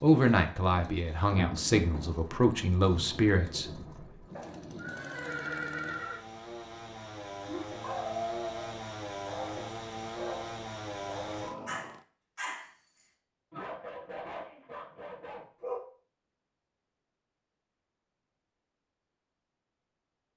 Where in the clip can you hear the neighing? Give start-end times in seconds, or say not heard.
4.3-6.2.